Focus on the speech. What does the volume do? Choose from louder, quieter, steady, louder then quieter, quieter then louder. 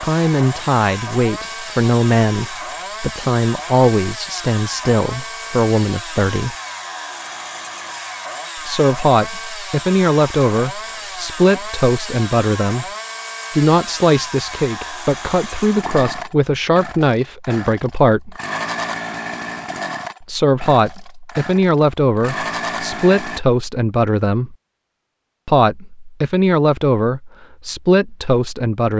steady.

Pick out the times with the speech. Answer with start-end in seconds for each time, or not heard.
0.0-6.5, 8.6-12.9, 13.5-18.4, 20.2-24.6, 25.4-28.9.